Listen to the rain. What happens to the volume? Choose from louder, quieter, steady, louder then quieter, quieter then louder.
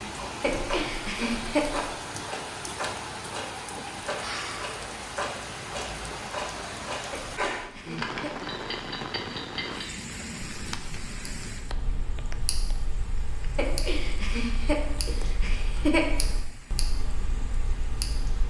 quieter.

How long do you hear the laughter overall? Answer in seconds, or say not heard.
5 s.